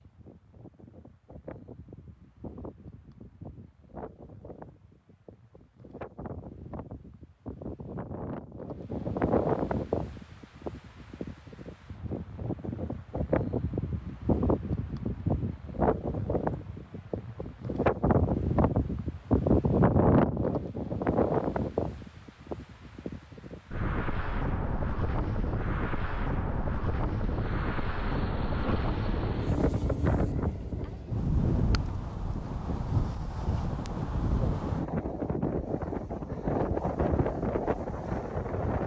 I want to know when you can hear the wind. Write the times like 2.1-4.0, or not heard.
0.0-38.8.